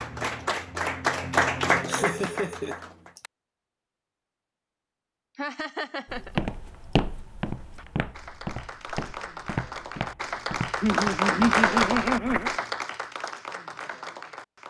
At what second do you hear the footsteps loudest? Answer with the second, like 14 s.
7 s.